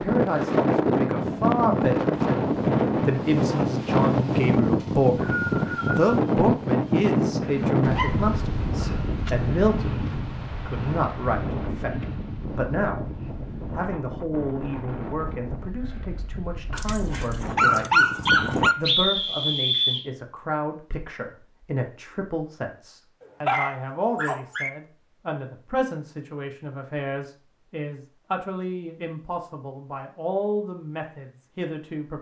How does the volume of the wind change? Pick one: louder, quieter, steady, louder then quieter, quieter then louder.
quieter.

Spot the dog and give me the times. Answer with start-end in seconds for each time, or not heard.
7.4-8.2, 16.7-18.8, 23.4-24.7.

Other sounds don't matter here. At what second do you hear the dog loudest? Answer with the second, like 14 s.
18 s.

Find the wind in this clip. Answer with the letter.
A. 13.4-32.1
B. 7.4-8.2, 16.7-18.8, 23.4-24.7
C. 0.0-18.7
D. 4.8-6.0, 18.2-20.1
C.